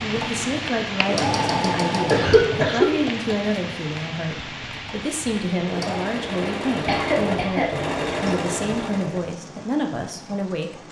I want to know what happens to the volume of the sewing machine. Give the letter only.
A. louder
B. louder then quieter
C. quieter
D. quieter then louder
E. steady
D.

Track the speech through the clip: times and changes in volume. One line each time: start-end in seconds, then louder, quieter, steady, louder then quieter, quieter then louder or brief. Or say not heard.
0.0-10.8 steady.